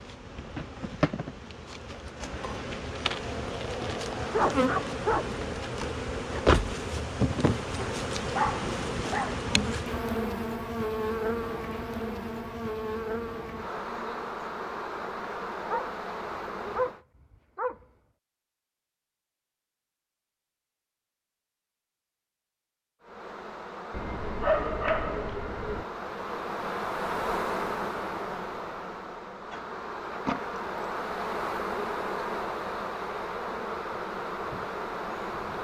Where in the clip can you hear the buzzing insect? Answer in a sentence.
You can hear the buzzing insect from 0.0 to 17.0 s and from 23.0 to 35.5 s.